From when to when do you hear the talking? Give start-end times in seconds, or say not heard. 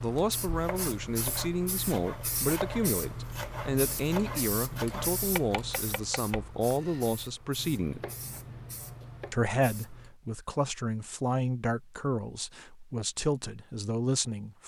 0.0-8.0, 9.3-14.6.